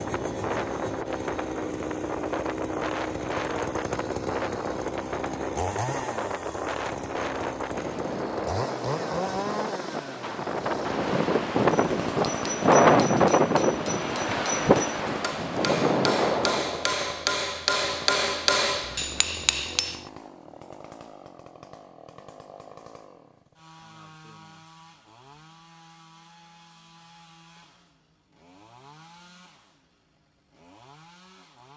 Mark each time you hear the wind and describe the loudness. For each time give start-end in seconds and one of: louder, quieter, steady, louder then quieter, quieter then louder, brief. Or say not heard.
0.0-16.9 louder.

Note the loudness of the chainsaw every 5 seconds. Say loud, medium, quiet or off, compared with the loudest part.
loud, loud, loud, medium, quiet, quiet, quiet.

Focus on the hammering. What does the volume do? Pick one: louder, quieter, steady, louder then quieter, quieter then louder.
louder.